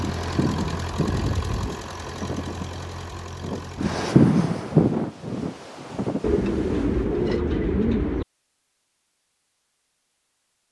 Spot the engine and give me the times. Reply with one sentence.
You can hear the engine from 0.0 to 4.0 s.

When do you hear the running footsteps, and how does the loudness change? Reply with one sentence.
You can't hear the running footsteps here.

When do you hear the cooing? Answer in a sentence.
You can hear the cooing from 6.2 to 8.2 s.